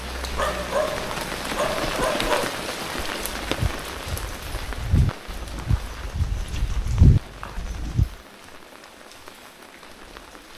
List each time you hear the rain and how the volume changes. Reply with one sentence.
You can hear the rain from 0.0 to 10.5 s, getting quieter.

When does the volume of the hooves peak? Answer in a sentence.
The loudest moment of the hooves is at 7 seconds.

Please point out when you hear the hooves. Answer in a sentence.
You can hear the hooves from 1.5 to 8.2 s.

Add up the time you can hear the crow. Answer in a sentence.
The crow can't be heard in this clip.